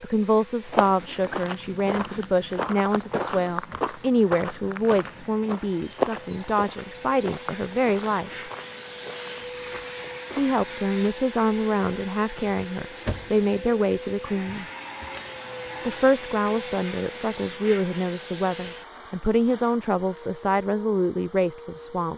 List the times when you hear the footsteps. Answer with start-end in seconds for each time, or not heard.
0.7-10.8.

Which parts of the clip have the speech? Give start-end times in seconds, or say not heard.
0.0-8.3, 10.3-14.7, 15.8-22.1.